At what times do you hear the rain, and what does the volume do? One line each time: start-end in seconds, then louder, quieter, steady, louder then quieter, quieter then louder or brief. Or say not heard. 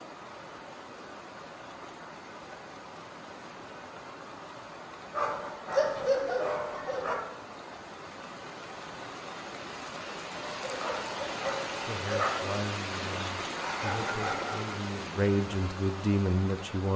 0.0-16.9 louder.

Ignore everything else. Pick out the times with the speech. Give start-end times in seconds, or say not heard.
11.8-16.9.